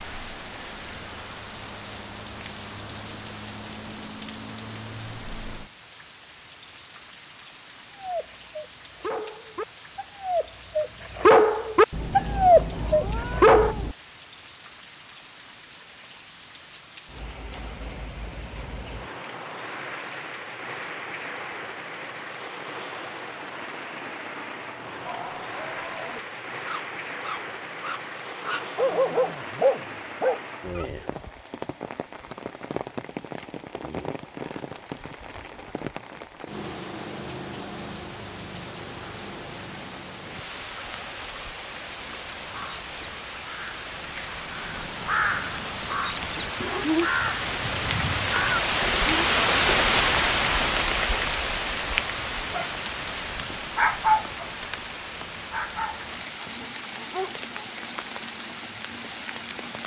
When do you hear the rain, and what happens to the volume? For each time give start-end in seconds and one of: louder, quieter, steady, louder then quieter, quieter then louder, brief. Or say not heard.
0.0-59.8 louder.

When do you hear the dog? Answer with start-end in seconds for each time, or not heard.
8.0-13.8, 25.0-30.9, 52.5-57.7.